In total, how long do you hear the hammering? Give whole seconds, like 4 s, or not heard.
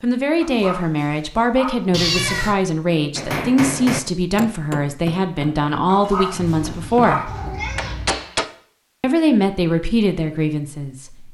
5 s.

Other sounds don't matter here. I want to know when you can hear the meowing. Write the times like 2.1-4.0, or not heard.
1.9-2.5, 6.6-8.2.